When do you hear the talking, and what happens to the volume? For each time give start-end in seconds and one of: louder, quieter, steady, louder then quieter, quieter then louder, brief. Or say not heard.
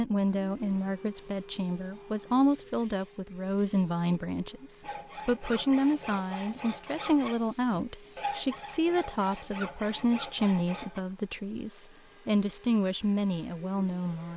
0.0-14.3 steady.